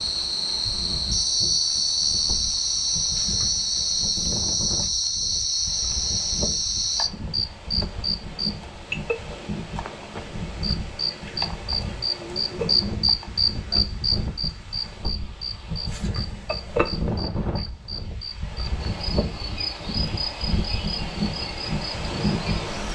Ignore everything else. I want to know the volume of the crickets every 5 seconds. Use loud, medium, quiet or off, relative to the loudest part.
loud, loud, loud, medium, medium.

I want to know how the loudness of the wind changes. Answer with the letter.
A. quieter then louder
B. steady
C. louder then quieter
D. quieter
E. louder
E.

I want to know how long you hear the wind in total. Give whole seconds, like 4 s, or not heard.
23 s.